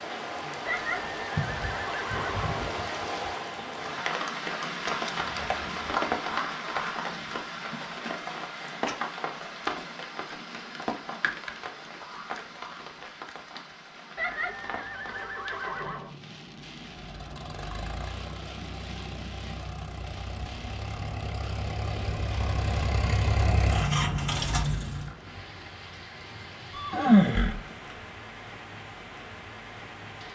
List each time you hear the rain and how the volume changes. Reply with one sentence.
You can hear the rain from 0.0 to 30.2 s, getting quieter.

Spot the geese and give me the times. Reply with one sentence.
The geese can't be heard in this clip.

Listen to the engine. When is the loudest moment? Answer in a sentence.
The volume of the engine peaks at 24 seconds.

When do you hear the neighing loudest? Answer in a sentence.
The volume of the neighing peaks at 27 seconds.